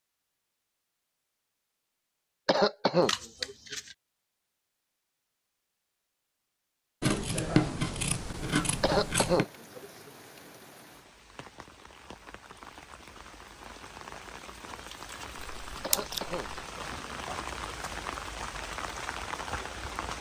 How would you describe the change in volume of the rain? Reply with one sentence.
The loudness of the rain goes up.